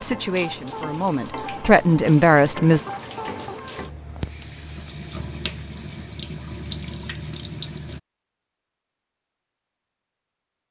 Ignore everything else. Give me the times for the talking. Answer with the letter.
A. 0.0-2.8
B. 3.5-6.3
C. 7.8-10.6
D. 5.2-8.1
A.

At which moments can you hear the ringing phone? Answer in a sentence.
The ringing phone can't be heard in this clip.